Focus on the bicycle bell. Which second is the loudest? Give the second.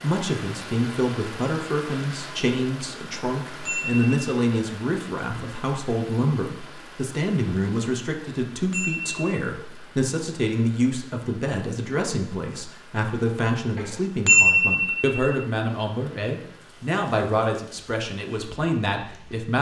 14 s.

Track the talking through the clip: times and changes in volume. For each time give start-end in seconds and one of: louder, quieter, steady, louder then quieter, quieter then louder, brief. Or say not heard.
0.0-19.5 steady.